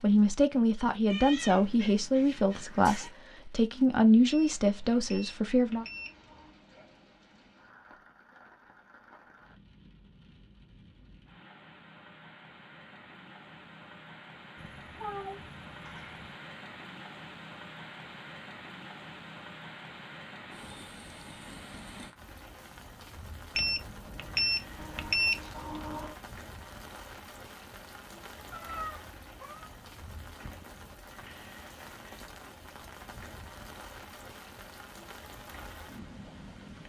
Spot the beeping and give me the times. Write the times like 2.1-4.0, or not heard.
4.2-6.5, 23.6-26.1.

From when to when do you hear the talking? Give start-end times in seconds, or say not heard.
0.0-5.8.